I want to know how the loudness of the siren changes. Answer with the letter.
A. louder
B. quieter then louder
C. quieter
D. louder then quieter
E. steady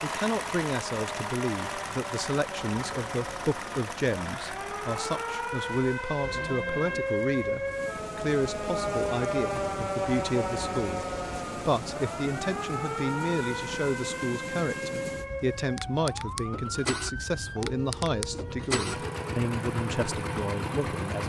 D.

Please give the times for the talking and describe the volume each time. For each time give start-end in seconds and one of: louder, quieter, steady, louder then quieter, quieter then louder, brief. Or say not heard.
0.0-11.1 steady
11.7-21.2 steady.